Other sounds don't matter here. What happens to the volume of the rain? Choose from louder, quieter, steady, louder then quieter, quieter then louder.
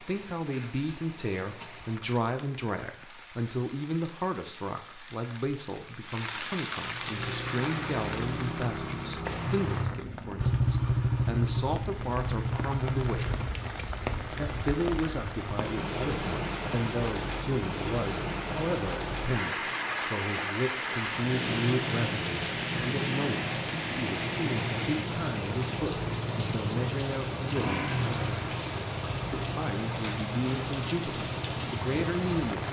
louder.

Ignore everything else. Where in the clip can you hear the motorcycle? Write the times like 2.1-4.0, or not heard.
7.0-13.7, 21.2-32.6.